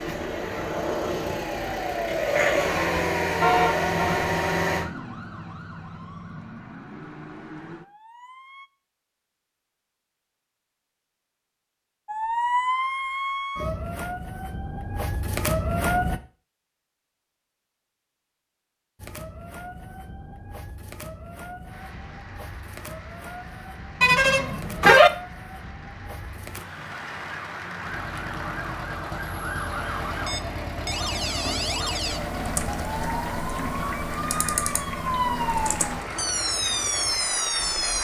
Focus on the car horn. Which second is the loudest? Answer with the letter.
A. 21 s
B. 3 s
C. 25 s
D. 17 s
C.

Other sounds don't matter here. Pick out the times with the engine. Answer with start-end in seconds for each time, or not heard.
0.0-4.8, 27.8-38.0.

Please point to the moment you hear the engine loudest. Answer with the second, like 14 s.
3 s.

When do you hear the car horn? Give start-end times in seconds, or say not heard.
3.4-4.3, 24.0-25.1.